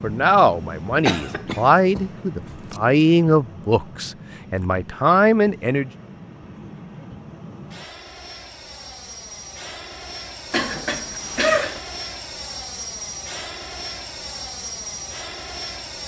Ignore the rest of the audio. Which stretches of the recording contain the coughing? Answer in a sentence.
The coughing can be heard from 1.1 to 2.8 s and from 10.5 to 11.8 s.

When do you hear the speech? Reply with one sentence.
You can hear the speech from 0.0 to 5.9 s.